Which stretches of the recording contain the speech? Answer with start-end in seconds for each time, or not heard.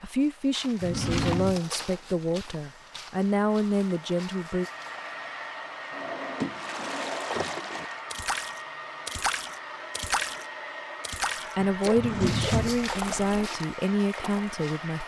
0.0-4.7, 11.6-15.0.